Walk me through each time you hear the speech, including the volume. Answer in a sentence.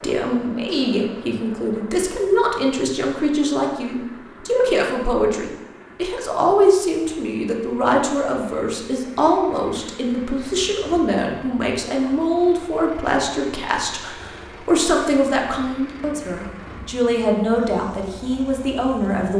You can hear the speech from 0.0 to 19.3 s, at a steady volume.